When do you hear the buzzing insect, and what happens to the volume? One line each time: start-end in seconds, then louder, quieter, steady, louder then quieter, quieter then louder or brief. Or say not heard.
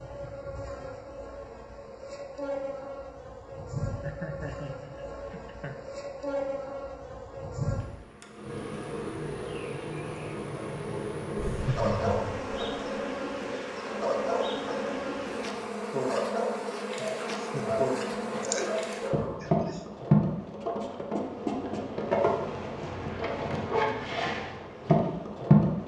0.0-25.8 louder.